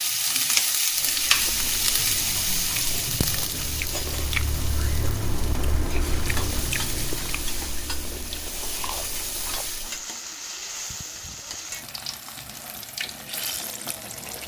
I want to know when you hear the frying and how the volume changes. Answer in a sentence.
You can hear the frying from 0.0 to 14.4 s, getting quieter.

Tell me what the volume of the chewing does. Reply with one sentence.
The volume of the chewing goes up, then down.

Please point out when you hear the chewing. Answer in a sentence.
The chewing can be heard from 0.9 to 10.1 s.